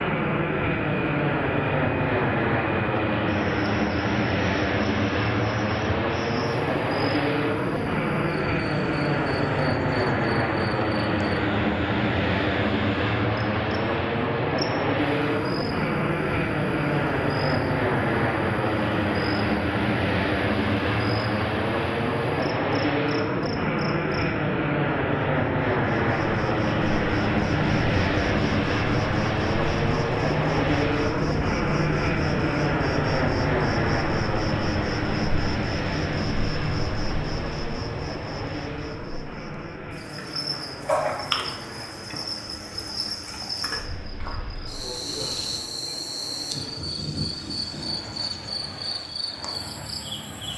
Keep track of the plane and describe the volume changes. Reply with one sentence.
The volume of the plane goes down.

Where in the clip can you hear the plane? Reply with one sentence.
The plane can be heard from 0.0 to 50.5 s.